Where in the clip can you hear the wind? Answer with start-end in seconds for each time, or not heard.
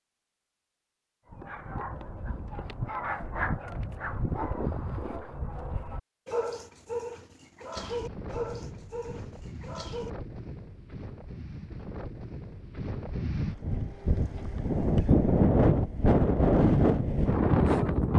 7.8-18.1.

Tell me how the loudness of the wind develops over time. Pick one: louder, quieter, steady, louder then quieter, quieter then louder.
louder.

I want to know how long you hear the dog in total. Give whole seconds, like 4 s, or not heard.
9 s.